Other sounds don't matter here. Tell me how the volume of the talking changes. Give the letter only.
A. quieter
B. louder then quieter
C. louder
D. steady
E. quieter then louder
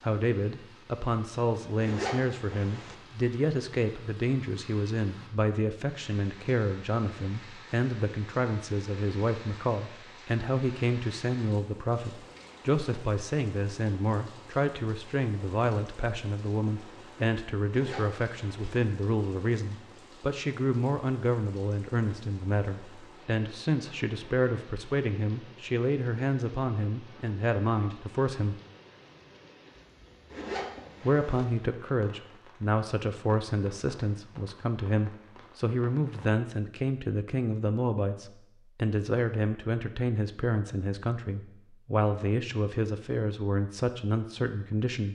D.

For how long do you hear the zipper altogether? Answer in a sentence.
You can hear the zipper for 3 seconds altogether.